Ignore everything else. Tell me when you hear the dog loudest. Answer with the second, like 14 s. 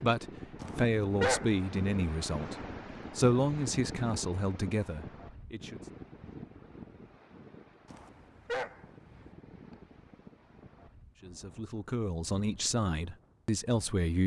1 s.